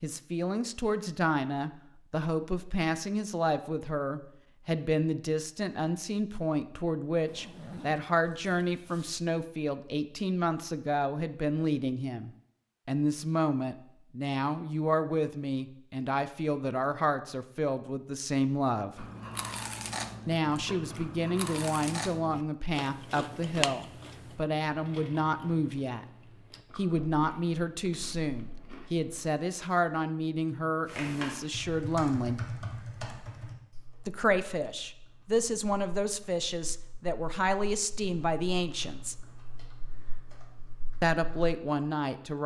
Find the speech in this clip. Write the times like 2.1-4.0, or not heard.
0.0-19.1, 20.2-26.1, 26.8-32.4, 34.0-39.2, 41.0-42.4.